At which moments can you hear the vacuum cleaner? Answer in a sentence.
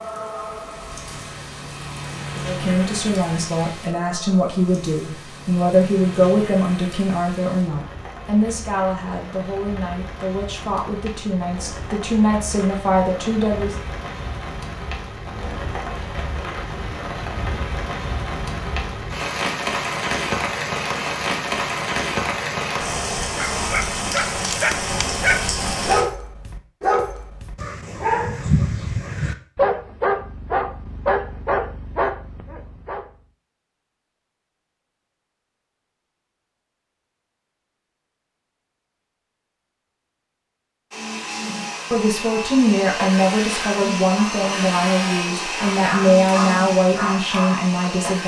You can hear the vacuum cleaner from 40.9 to 48.2 s.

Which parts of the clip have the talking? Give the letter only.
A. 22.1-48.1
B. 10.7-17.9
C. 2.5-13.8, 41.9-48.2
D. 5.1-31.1
C.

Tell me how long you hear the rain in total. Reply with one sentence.
The rain can be heard for 26 seconds in total.